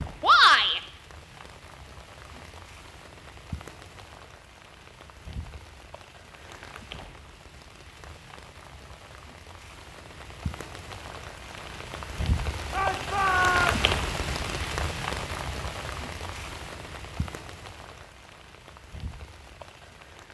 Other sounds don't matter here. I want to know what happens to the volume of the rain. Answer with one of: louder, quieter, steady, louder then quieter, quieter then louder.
louder then quieter.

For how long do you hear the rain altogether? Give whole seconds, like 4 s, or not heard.
20 s.